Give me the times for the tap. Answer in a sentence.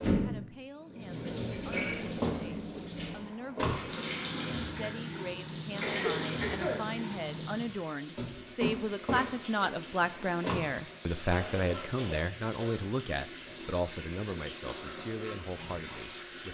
You can hear the tap from 0.0 to 16.4 s.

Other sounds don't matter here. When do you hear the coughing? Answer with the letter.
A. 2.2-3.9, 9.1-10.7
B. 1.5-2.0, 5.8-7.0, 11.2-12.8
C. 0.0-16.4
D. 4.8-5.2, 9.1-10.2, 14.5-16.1
B.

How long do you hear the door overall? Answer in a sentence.
The door can be heard for 3 seconds in total.